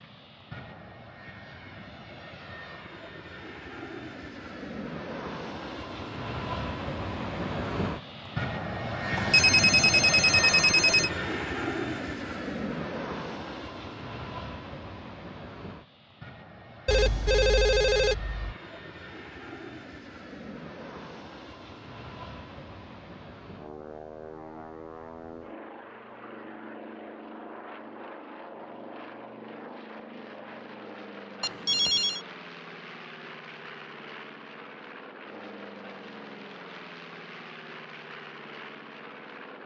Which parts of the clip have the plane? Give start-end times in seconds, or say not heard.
0.0-39.6.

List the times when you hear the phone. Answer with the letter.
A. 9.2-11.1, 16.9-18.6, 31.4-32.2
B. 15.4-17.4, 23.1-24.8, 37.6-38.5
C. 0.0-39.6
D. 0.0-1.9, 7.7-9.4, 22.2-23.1
A.